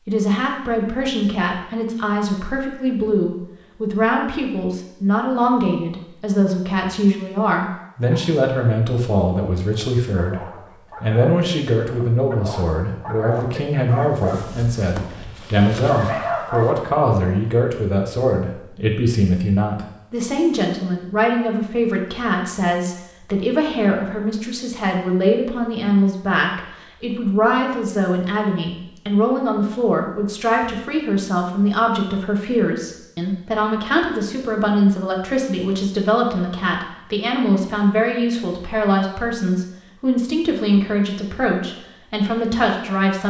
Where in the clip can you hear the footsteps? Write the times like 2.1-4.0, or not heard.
not heard.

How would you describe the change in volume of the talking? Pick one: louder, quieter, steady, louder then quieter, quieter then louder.
steady.